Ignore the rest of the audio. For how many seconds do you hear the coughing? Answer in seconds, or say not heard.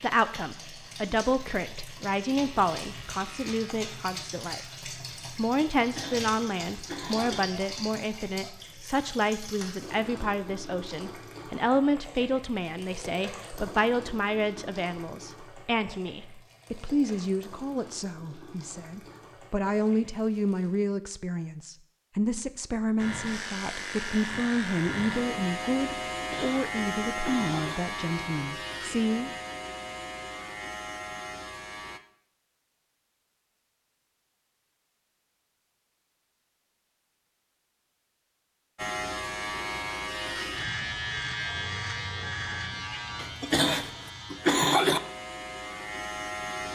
5 s.